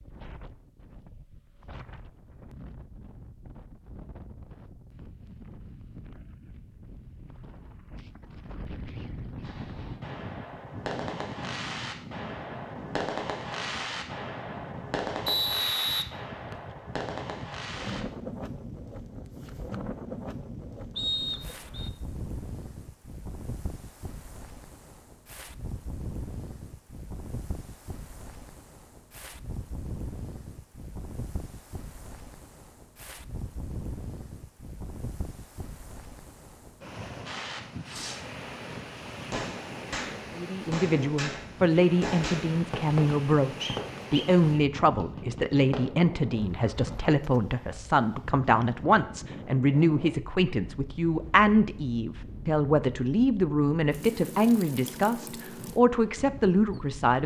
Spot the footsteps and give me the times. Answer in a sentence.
The footsteps can't be heard in this clip.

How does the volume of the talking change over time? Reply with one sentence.
The volume of the talking stays about the same.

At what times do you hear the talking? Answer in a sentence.
The talking can be heard from 40.4 to 57.2 s.